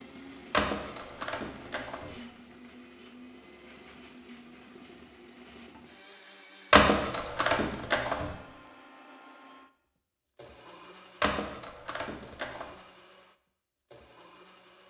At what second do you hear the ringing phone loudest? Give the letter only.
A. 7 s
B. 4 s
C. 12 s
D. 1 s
A.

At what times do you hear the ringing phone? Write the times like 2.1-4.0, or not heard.
0.5-2.1, 6.7-8.3, 11.2-12.7.